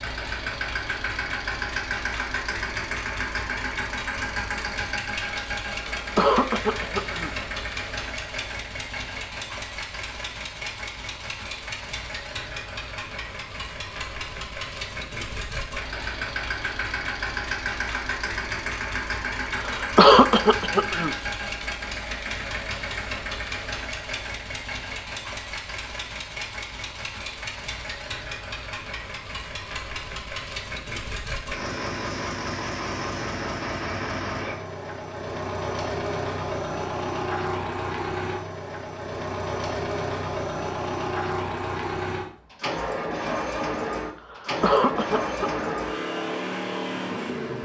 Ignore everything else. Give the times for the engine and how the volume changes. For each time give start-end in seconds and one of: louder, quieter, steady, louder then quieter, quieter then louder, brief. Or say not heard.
0.0-47.6 steady.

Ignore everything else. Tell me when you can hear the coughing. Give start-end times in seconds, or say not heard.
6.0-7.3, 19.6-21.1, 44.2-45.8.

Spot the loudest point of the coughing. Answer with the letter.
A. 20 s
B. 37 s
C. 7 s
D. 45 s
A.